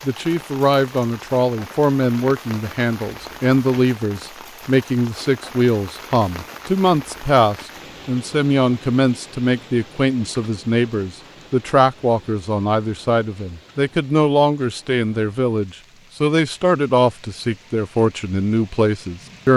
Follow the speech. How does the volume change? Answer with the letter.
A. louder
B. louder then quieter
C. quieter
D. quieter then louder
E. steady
E.